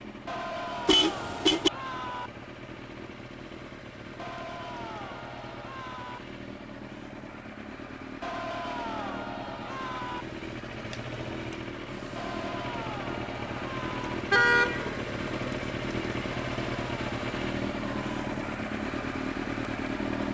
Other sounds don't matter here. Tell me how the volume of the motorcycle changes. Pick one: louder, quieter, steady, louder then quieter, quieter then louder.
louder.